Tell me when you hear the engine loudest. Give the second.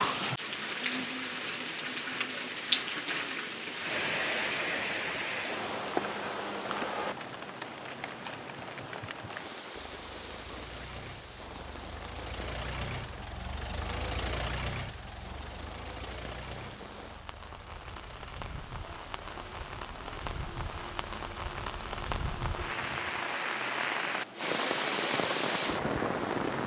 14 s.